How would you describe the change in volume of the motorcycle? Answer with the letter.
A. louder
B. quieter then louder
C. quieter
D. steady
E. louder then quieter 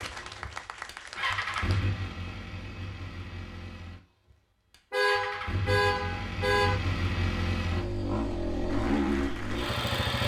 B.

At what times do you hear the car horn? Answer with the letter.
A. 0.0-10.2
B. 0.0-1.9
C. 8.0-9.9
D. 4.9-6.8
D.